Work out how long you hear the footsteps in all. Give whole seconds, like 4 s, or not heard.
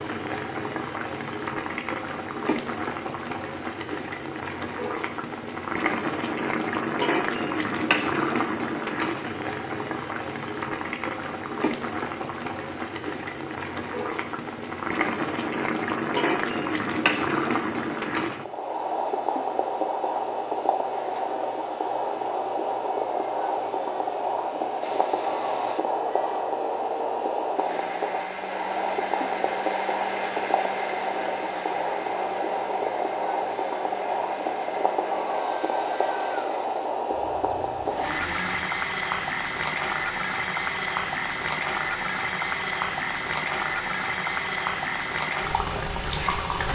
not heard.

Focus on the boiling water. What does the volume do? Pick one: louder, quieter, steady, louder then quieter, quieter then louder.
steady.